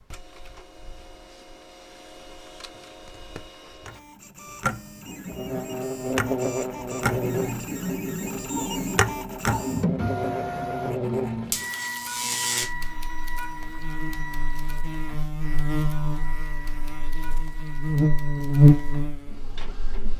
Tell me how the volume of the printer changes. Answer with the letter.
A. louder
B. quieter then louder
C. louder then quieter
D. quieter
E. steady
C.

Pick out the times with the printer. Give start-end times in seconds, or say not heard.
0.0-20.1.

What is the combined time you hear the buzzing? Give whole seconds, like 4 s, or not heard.
15 s.